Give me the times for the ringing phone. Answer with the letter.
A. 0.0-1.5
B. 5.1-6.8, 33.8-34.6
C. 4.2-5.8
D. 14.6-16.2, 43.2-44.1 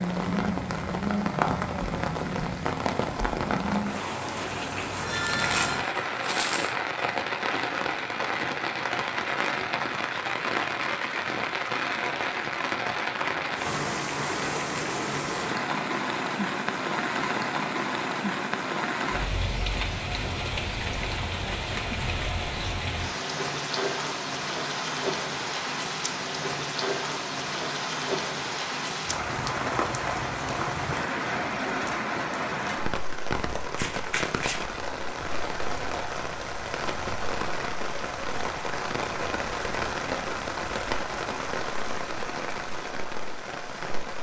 C.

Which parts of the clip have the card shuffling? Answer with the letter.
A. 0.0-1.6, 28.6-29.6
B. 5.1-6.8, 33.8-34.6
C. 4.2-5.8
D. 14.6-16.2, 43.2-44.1
B.